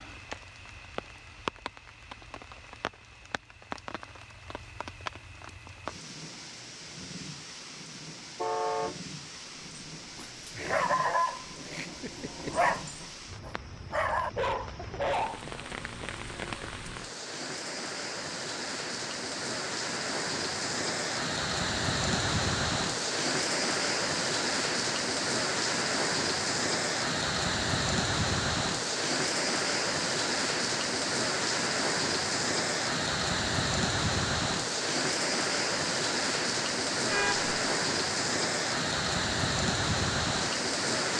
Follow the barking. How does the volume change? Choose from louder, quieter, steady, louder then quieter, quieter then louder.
quieter then louder.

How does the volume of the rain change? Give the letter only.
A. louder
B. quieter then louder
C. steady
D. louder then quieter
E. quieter
A.